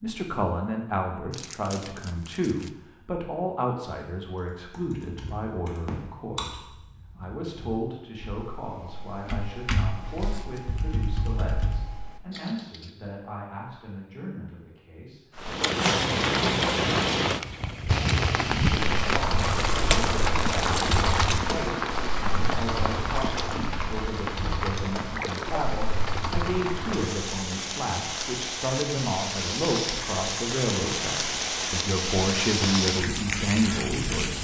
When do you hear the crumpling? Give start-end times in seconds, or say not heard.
1.3-2.7, 19.4-21.4.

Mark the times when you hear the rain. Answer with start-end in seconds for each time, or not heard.
15.3-34.3.